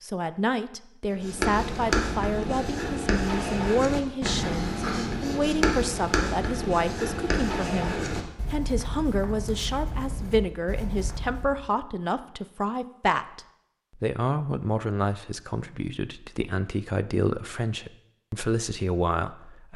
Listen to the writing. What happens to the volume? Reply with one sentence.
The volume of the writing goes down.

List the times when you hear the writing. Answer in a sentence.
The writing can be heard from 1.1 to 11.6 s.